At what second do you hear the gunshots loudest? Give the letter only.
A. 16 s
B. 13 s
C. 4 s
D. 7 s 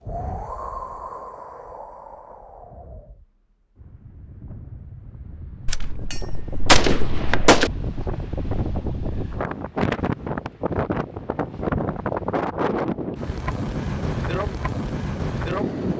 D.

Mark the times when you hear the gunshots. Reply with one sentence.
The gunshots can be heard from 5.7 to 7.7 s.